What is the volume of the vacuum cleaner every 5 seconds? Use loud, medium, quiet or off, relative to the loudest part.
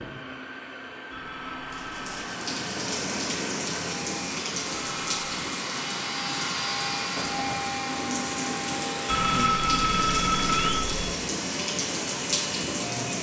medium, loud, medium.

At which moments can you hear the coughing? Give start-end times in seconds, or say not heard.
7.2-7.8.